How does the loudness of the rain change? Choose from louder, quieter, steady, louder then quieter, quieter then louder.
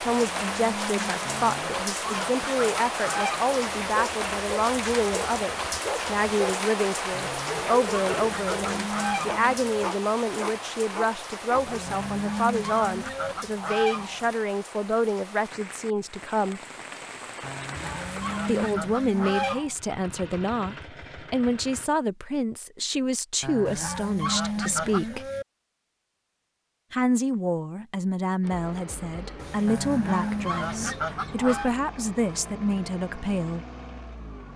quieter.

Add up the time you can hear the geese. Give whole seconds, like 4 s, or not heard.
13 s.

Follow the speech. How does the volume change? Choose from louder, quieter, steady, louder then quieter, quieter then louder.
steady.